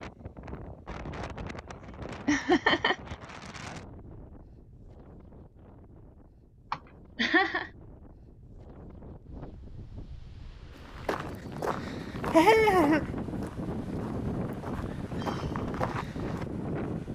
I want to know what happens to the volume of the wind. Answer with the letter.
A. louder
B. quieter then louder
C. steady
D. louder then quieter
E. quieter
B.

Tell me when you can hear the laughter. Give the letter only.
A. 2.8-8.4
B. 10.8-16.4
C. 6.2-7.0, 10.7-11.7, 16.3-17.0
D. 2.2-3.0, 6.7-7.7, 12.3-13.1
D.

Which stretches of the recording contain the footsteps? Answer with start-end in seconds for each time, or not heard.
10.8-16.4.